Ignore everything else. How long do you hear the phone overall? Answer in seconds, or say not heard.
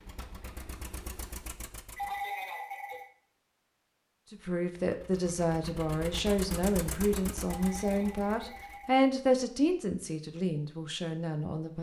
3 s.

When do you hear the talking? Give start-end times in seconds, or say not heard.
4.3-11.7.